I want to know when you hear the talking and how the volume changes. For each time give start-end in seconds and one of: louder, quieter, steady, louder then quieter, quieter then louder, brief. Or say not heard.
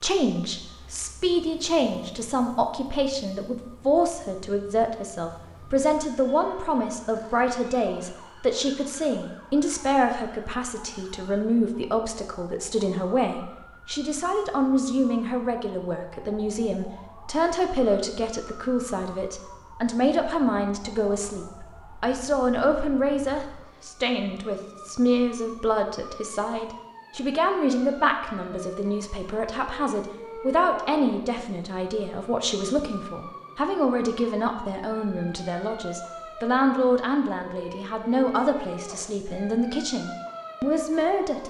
0.0-41.4 steady.